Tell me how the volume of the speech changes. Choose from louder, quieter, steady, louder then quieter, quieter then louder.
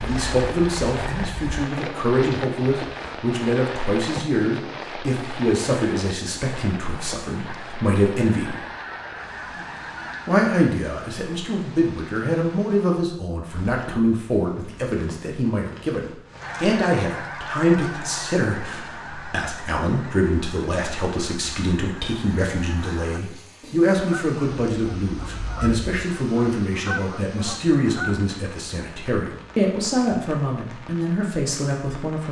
steady.